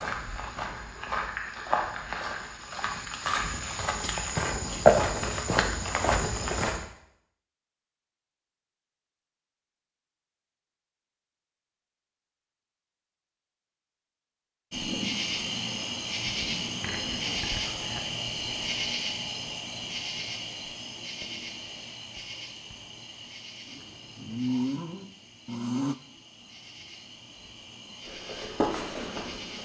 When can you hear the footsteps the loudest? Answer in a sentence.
The volume of the footsteps peaks at 5 seconds.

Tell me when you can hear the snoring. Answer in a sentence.
The snoring can be heard from 23.7 to 25.9 s.